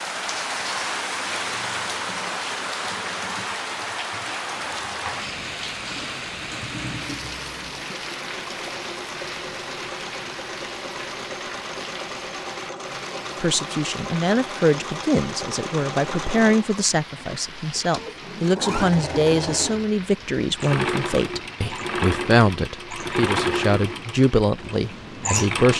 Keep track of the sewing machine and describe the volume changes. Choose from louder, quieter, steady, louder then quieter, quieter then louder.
louder.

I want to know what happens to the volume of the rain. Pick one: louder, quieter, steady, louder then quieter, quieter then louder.
quieter.